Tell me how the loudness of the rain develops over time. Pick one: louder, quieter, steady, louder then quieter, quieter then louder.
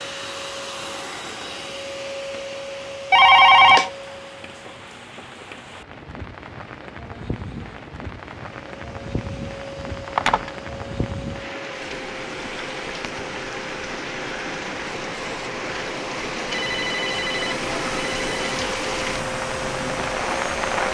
louder.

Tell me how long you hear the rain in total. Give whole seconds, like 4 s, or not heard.
21 s.